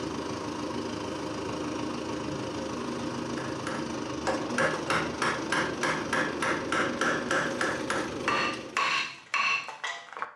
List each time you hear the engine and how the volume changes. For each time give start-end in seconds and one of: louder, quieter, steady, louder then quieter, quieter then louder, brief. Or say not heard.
0.0-8.9 steady.